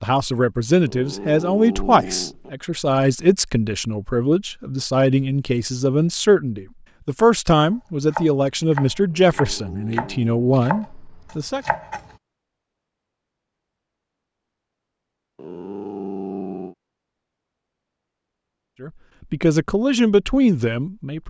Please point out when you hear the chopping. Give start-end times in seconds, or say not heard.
7.7-12.2.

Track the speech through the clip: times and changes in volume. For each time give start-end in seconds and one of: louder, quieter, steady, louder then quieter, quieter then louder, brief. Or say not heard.
0.0-11.7 steady
18.8-21.2 brief.